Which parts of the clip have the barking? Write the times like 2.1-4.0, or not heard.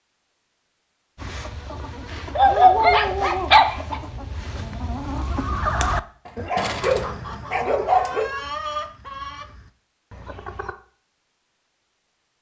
2.4-4.0, 6.2-8.3.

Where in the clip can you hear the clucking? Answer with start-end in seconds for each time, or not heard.
1.1-10.8.